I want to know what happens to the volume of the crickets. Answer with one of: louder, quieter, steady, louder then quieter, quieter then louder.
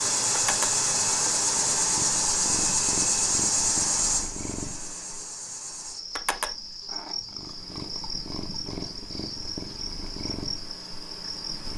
quieter.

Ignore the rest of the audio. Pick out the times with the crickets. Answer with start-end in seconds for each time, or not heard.
0.0-11.7.